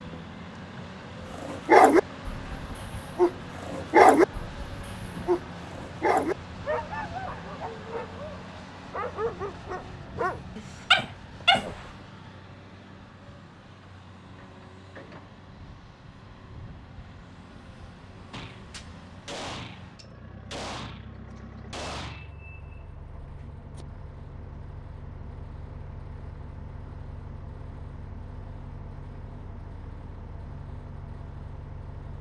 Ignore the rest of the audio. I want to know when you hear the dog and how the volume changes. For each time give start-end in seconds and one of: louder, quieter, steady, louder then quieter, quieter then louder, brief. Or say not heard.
1.4-11.8 quieter then louder.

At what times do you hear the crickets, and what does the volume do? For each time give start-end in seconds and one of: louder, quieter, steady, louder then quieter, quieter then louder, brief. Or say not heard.
not heard.